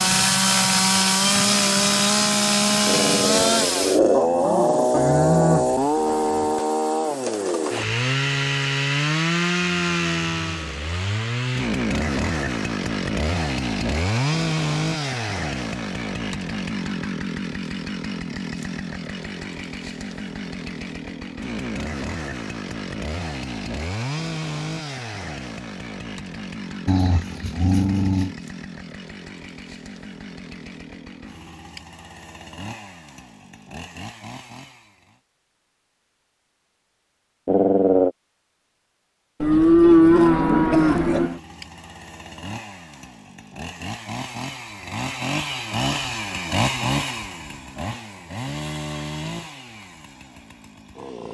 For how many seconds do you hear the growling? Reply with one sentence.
You can hear the growling for 4 seconds altogether.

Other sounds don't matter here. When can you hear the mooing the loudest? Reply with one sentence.
The loudest moment of the mooing is at 40 seconds.